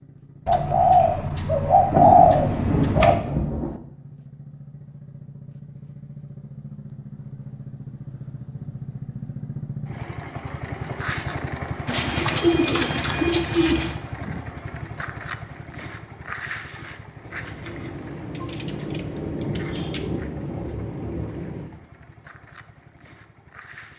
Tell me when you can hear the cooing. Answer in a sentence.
The cooing can be heard from 0.5 to 3.2 s, from 11.8 to 13.9 s and from 18.4 to 20.1 s.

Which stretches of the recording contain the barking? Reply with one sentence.
You can't hear the barking here.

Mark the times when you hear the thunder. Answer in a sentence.
The thunder can be heard from 1.9 to 3.8 s and from 17.2 to 21.7 s.